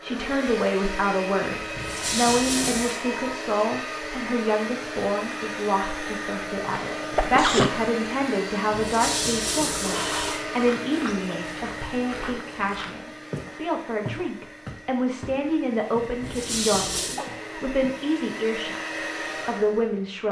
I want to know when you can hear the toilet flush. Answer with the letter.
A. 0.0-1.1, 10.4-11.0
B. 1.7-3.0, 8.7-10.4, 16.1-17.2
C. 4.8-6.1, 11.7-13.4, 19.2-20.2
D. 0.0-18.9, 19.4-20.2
B.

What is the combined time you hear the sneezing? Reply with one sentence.
You can hear the sneezing for 2 seconds altogether.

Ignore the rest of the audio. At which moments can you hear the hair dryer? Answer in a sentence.
You can hear the hair dryer from 0.0 to 20.2 s.